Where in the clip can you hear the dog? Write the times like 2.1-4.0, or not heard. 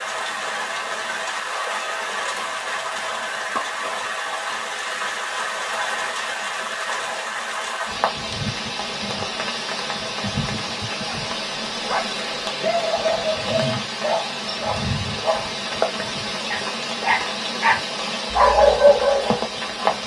11.1-20.0.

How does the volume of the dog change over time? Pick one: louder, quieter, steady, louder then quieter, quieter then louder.
louder.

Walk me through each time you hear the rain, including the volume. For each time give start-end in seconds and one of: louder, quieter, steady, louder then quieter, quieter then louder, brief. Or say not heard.
0.0-20.0 steady.